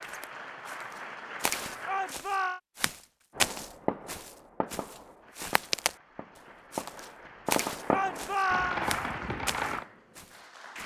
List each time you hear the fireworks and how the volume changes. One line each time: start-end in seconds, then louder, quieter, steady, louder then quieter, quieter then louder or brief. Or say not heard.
3.4-9.8 quieter then louder.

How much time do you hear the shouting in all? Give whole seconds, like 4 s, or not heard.
2 s.